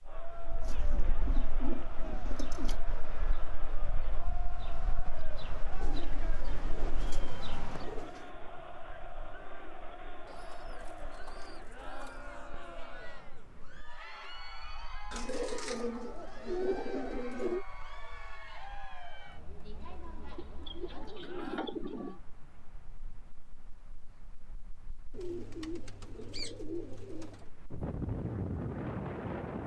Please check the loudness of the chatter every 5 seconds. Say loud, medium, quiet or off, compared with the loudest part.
loud, loud, loud, loud, loud, off.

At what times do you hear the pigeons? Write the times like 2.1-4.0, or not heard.
0.6-2.8, 5.8-8.3, 10.2-12.2, 15.1-17.6, 20.4-22.2, 25.1-27.5.